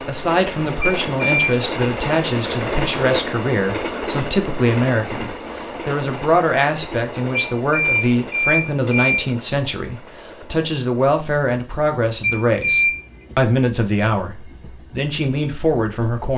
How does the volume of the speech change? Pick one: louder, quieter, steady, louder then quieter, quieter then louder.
steady.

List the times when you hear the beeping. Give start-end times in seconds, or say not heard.
0.8-1.6, 7.5-9.2, 12.2-13.1.